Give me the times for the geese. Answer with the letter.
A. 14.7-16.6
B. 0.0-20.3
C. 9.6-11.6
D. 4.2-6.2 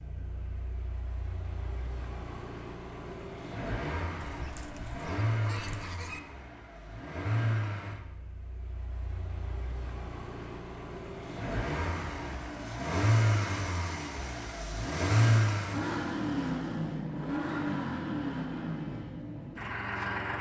D.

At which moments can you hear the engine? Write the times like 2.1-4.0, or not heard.
0.0-20.3.